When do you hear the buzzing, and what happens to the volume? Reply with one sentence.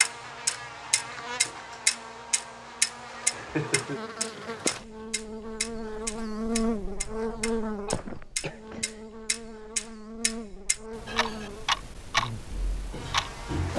You can hear the buzzing from 0.0 to 13.7 s, getting louder then quieter.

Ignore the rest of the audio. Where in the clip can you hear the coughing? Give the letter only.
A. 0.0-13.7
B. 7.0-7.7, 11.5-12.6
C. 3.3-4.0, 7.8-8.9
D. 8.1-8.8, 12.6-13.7
C.